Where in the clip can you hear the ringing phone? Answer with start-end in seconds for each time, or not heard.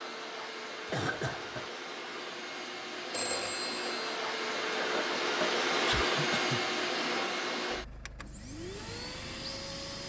3.1-4.2.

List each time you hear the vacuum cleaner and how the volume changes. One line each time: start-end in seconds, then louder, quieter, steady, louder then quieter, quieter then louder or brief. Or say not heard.
0.0-10.0 louder then quieter.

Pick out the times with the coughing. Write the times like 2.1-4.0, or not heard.
0.9-1.7, 5.8-6.6.